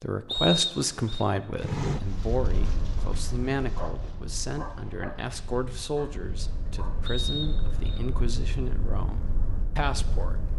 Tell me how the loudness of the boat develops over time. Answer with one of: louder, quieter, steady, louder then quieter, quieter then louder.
quieter then louder.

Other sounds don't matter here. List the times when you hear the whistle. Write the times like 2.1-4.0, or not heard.
0.2-1.2, 7.0-8.0.